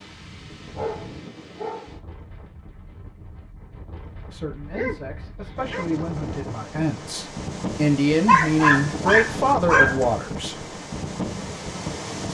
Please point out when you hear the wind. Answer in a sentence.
The wind can be heard from 0.0 to 12.2 s.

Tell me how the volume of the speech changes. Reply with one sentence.
The volume of the speech goes up.